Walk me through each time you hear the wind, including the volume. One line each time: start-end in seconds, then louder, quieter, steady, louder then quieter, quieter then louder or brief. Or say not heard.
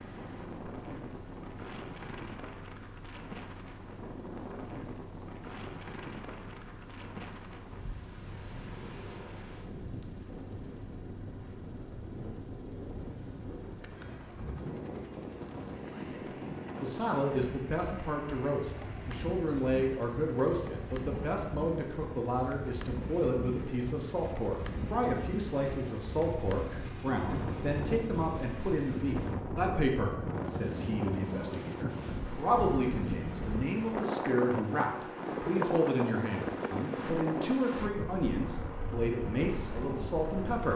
0.0-40.6 louder.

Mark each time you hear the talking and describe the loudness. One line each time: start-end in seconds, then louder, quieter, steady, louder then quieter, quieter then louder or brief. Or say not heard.
15.9-40.7 steady.